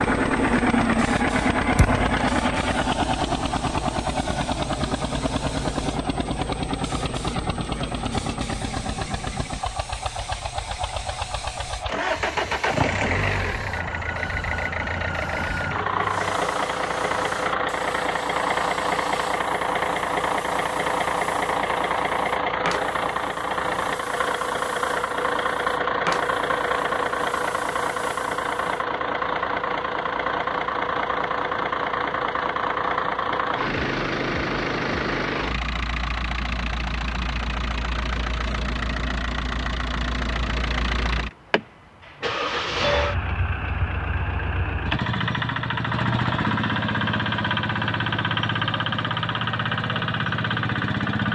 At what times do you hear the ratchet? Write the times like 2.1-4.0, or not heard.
not heard.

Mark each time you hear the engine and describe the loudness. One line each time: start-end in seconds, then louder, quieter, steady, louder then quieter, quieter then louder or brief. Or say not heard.
0.0-51.3 steady.